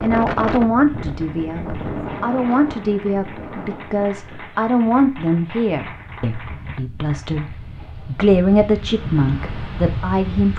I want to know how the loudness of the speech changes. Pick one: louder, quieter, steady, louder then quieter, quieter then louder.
quieter then louder.